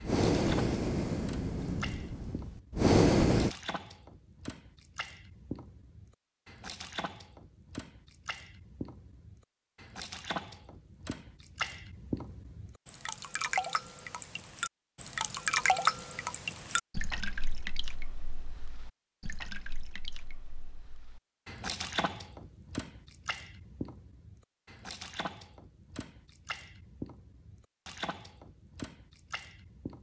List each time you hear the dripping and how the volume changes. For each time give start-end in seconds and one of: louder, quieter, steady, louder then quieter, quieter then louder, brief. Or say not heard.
0.0-29.9 louder then quieter.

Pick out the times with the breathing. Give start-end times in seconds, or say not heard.
0.0-3.5.